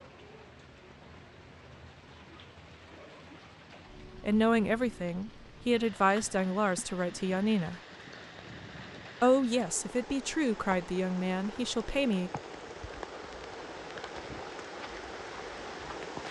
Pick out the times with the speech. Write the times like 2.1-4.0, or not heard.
4.2-7.8, 9.2-12.3.